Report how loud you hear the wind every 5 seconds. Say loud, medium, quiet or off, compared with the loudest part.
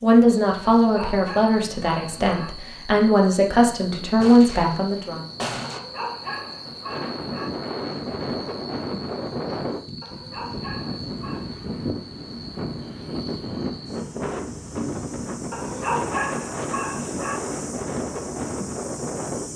quiet, loud, loud, loud.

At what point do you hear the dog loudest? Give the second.
16 s.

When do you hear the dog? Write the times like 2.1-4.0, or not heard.
0.8-2.5, 5.7-7.5, 10.0-11.5, 15.5-17.4.